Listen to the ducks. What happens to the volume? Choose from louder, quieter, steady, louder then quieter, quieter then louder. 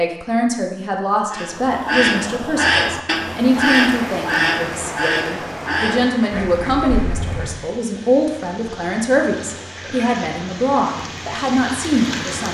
quieter.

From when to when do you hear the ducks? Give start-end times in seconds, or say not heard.
1.3-7.5.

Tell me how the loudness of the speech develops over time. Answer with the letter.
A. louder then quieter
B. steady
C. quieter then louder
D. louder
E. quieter
B.